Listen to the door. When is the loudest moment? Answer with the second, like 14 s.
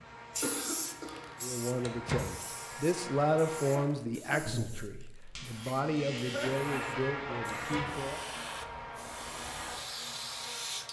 2 s.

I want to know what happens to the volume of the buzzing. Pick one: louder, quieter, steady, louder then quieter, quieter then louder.
louder then quieter.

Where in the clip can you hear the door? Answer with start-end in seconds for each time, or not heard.
1.8-2.4, 7.6-8.1.